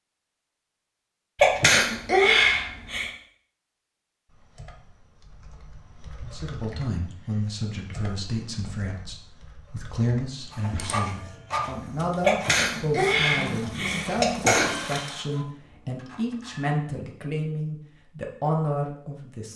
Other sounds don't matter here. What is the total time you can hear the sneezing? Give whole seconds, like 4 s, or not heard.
4 s.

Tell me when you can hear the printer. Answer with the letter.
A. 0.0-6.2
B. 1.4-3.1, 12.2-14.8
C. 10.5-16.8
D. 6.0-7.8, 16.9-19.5
C.